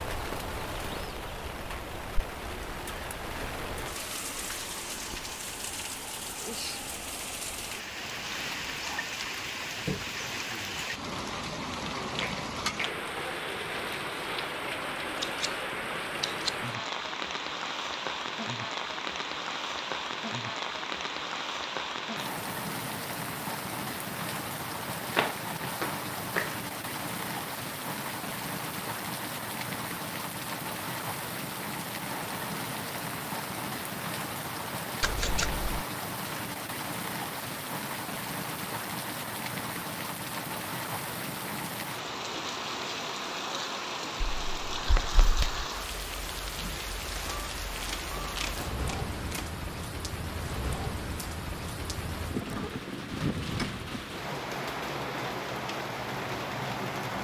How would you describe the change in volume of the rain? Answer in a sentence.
The volume of the rain stays about the same.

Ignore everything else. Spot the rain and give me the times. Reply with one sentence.
You can hear the rain from 0.0 to 57.2 s.